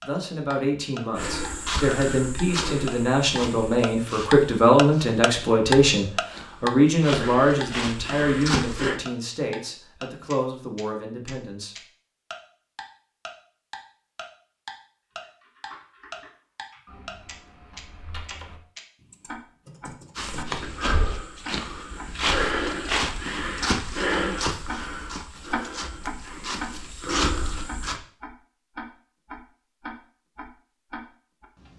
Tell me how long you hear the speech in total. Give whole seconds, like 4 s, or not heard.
12 s.